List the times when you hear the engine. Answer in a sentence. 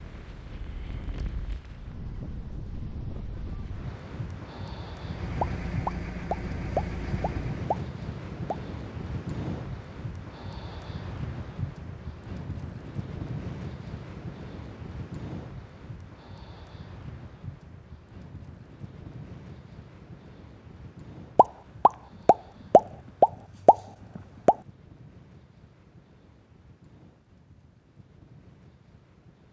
You can hear the engine from 4.9 to 7.8 s.